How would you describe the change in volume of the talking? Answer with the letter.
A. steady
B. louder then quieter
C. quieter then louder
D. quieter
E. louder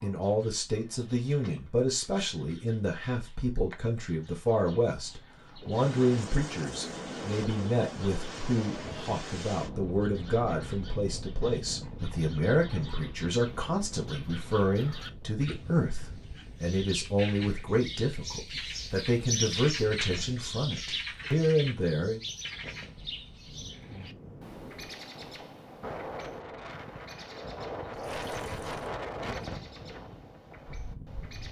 A.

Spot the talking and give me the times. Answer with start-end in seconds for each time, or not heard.
0.0-22.2.